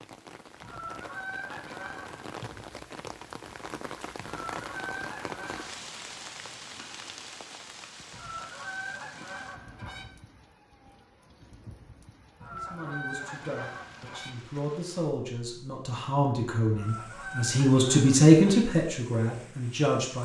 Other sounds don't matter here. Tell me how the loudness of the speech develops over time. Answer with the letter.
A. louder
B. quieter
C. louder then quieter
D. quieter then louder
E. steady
C.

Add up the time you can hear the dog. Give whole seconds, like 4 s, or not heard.
not heard.